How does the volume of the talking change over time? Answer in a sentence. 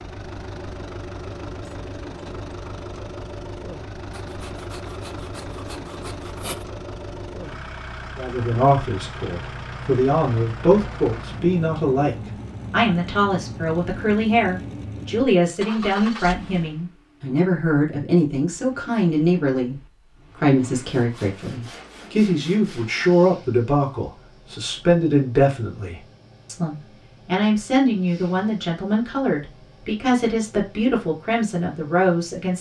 The loudness of the talking stays about the same.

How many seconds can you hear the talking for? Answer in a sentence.
You can hear the talking for 24 seconds altogether.